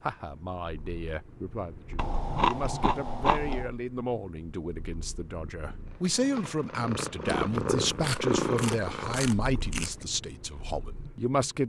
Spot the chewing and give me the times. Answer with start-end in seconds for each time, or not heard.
1.9-3.6, 7.3-10.1.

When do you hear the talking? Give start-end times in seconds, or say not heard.
0.0-11.6.